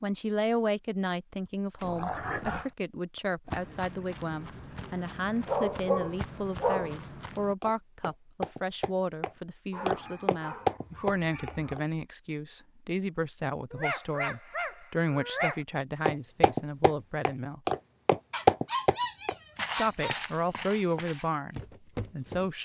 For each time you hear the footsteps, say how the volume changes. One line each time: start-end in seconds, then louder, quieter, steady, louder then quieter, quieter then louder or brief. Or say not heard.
3.5-11.8 louder
16.1-22.6 louder then quieter.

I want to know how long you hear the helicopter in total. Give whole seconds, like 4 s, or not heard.
not heard.